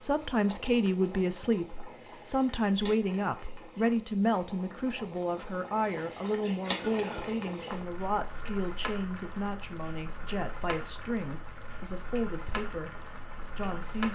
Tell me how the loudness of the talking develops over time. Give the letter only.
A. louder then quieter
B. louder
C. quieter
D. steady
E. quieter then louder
C.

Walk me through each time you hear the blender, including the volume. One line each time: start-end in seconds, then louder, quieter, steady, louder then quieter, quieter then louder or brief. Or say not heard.
not heard.